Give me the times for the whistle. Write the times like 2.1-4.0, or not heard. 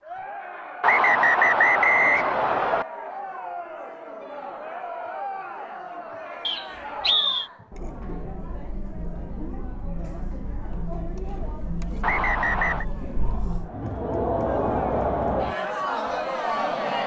0.8-2.9, 6.5-7.5, 12.0-12.8.